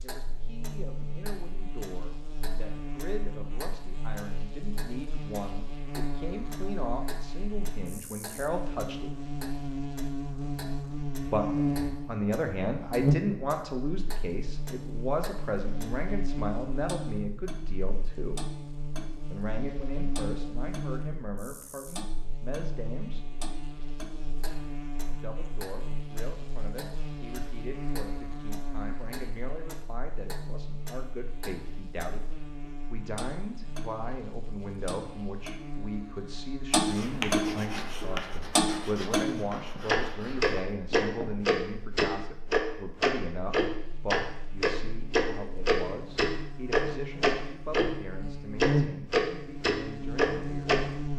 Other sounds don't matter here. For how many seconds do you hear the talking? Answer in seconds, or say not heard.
45 s.